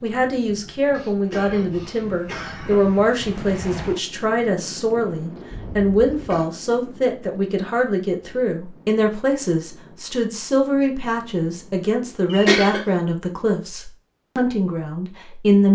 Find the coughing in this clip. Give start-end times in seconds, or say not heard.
0.9-2.9, 5.5-6.5, 12.2-12.8.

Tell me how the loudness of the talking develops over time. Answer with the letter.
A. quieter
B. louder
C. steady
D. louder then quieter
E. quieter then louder
C.